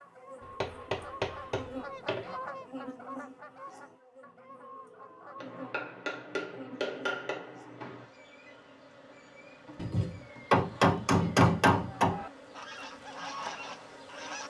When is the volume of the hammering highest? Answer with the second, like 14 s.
12 s.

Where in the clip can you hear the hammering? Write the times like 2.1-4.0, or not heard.
0.4-2.3, 5.4-8.1, 9.8-12.2.